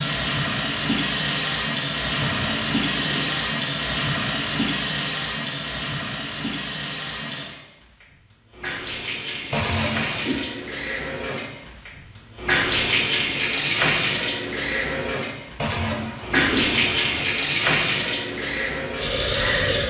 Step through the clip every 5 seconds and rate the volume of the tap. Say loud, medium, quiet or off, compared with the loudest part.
loud, medium, loud, loud.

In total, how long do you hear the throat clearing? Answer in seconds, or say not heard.
4 s.